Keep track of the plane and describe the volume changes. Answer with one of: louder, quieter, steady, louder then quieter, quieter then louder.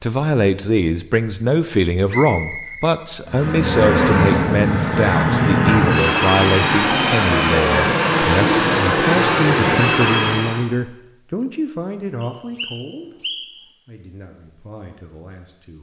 steady.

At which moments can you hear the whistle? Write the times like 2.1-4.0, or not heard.
2.0-3.6, 12.2-13.7.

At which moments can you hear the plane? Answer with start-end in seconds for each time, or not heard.
3.2-10.7.